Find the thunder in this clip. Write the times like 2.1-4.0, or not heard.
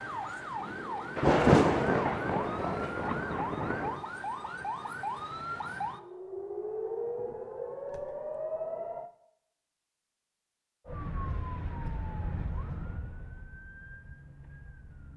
1.1-4.0.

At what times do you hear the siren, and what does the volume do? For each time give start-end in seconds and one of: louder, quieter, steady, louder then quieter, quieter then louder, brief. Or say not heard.
0.0-9.1 steady
10.8-15.1 quieter.